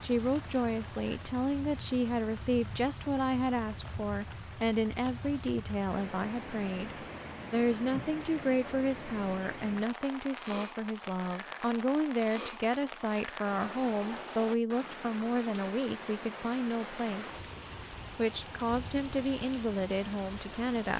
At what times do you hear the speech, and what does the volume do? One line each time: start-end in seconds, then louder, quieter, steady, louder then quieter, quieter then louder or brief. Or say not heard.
0.0-20.9 steady.